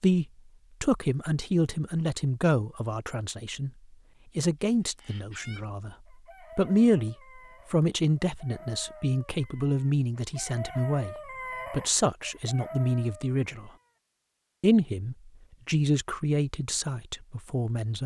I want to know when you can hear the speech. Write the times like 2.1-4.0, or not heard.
0.0-3.7, 4.3-6.0, 6.5-13.7, 14.6-18.0.